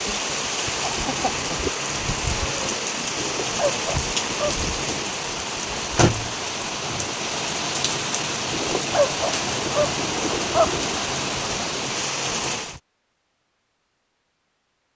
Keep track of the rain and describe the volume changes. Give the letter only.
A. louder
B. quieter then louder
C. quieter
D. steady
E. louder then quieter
D.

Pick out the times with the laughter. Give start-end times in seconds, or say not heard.
0.8-1.8.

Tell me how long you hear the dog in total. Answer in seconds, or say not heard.
4 s.